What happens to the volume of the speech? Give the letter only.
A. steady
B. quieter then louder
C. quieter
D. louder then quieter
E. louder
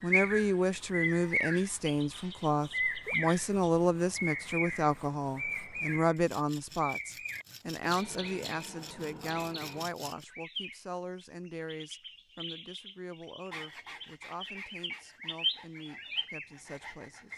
C.